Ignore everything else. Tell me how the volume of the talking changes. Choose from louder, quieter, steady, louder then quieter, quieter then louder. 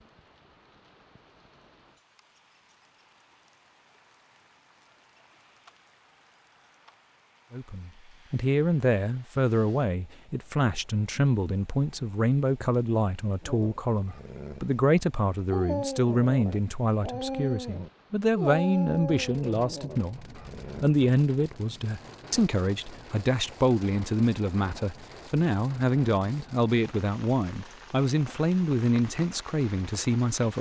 steady.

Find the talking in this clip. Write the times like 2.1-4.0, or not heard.
7.5-30.5.